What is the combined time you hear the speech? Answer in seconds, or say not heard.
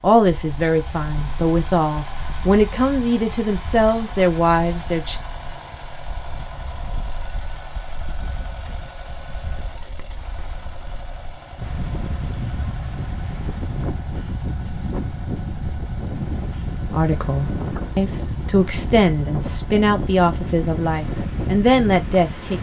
11 s.